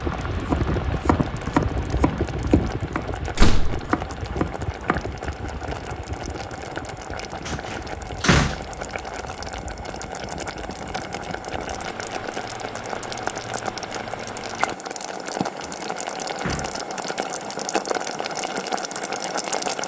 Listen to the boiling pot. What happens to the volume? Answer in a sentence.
The volume of the boiling pot goes up.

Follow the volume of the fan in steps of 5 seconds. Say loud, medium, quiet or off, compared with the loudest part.
loud, medium, medium, off.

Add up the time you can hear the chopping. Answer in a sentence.
The chopping can be heard for 5 seconds in total.